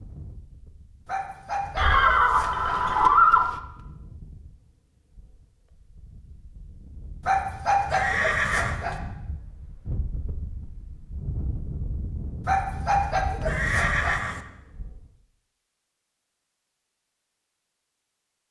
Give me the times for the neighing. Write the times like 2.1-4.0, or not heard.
1.8-3.5, 7.9-8.8, 13.4-14.4.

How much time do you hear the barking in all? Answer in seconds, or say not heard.
5 s.